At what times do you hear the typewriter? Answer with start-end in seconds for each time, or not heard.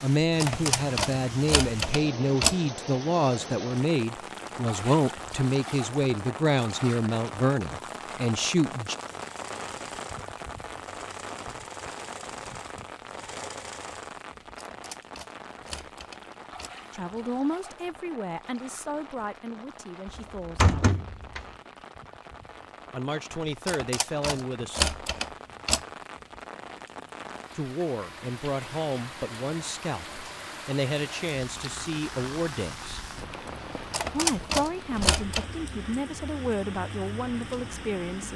0.2-2.6, 14.4-16.7, 23.4-25.9, 33.7-35.5.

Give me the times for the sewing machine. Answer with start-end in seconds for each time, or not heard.
9.0-14.2.